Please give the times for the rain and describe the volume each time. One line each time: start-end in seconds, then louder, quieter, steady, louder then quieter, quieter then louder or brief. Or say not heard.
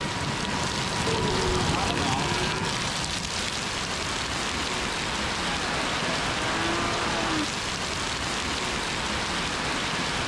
0.0-10.2 steady.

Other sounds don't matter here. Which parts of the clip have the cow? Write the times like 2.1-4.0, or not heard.
1.1-2.8, 5.5-7.5.